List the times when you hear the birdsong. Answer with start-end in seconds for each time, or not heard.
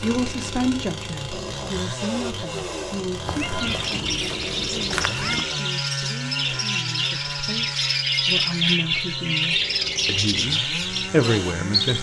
3.5-11.9.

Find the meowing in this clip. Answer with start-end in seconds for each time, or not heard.
3.2-5.5.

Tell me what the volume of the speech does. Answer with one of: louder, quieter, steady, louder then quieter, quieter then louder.
quieter then louder.